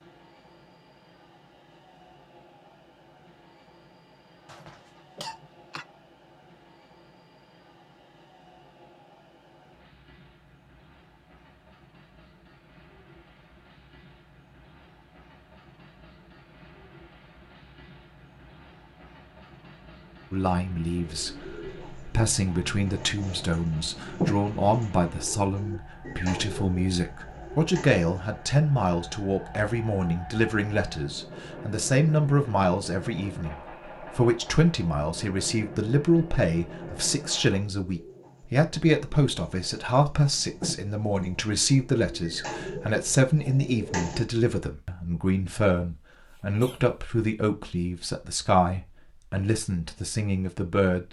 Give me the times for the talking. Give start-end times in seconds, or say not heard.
20.3-51.0.